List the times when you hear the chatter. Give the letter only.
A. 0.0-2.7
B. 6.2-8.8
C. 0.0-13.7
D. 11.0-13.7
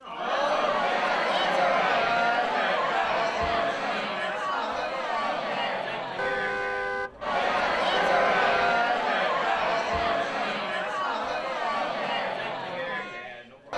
C.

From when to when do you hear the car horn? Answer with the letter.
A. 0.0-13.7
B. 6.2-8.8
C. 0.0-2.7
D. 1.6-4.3
B.